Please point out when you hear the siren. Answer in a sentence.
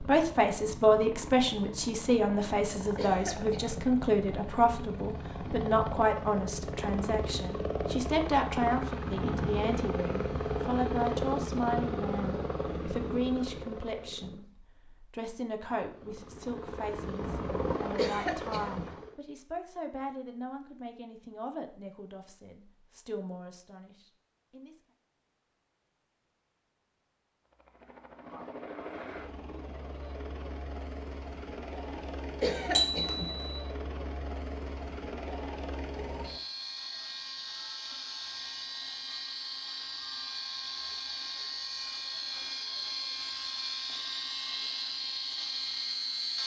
The siren can't be heard in this clip.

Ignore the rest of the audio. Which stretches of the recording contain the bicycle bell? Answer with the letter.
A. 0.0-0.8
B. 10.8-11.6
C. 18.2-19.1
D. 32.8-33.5
D.